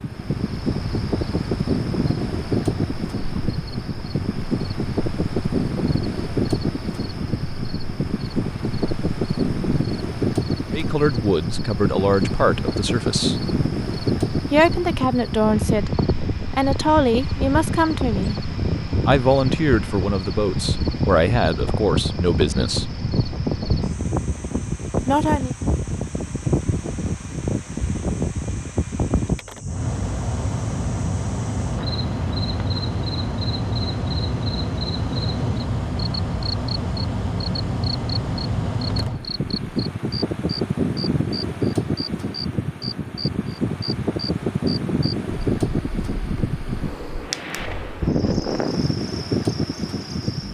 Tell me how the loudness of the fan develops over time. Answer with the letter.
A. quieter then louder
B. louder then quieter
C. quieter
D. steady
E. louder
D.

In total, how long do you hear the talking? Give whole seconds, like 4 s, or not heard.
11 s.